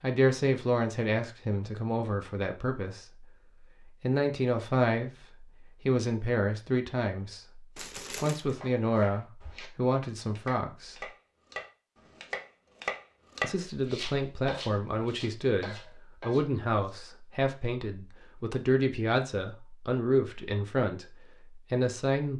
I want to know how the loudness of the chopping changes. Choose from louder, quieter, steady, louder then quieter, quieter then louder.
louder then quieter.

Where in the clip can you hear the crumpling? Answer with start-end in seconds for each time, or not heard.
7.8-8.6.